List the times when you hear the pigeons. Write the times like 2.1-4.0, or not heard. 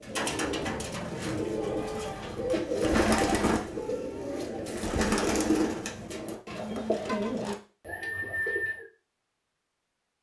0.0-8.8.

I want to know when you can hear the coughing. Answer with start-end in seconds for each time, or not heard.
not heard.